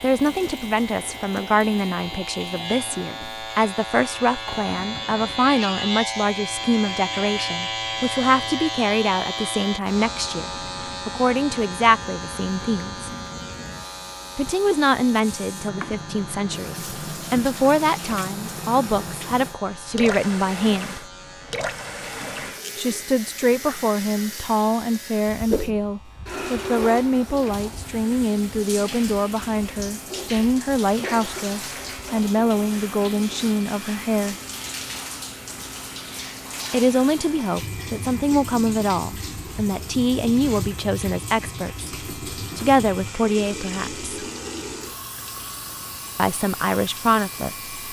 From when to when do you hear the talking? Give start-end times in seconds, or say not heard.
0.0-13.1, 14.3-21.1, 22.8-34.4, 36.7-44.0, 46.1-47.7.